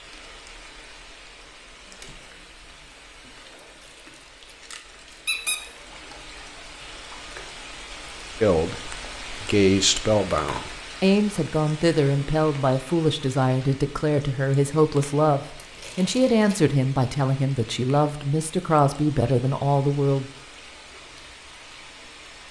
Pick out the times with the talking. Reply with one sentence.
The talking can be heard from 8.4 to 20.2 s.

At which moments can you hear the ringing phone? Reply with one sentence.
The ringing phone can be heard from 10.3 to 10.8 s.